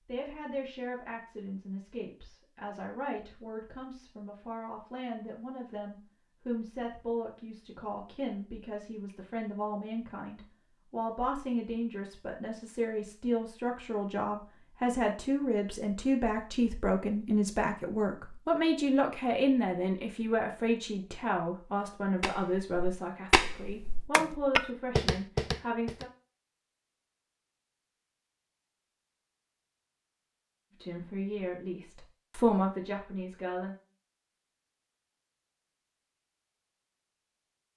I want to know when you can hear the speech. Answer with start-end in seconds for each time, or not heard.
0.1-26.1, 30.8-33.8.